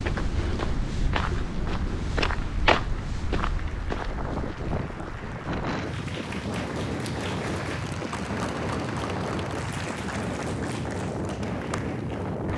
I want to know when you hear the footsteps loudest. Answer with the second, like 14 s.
3 s.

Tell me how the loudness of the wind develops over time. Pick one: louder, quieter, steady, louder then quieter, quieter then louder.
louder.